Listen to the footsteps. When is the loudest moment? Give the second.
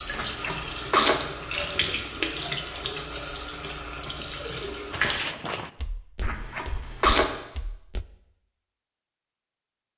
5 s.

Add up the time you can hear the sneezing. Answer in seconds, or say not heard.
2 s.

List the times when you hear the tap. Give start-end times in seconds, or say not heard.
0.0-5.2.